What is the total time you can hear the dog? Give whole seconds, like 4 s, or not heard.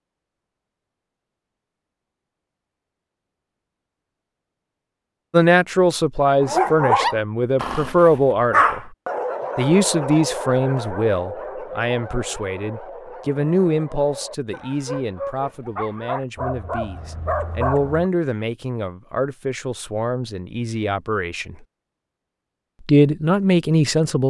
12 s.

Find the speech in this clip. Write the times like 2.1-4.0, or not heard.
5.3-8.8, 9.6-21.6, 22.9-24.2.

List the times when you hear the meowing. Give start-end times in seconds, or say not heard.
not heard.